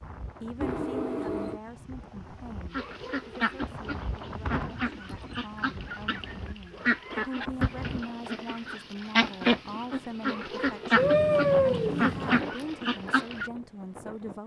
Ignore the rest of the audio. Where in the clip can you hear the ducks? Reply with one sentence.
You can hear the ducks from 2.7 to 13.5 s.